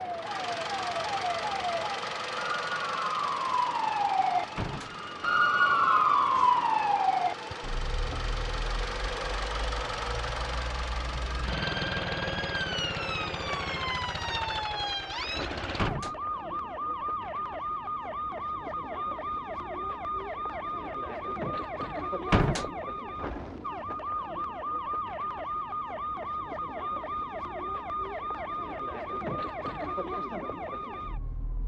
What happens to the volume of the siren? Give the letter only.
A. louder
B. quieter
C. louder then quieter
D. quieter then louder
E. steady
B.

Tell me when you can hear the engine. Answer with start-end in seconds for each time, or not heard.
0.0-15.9.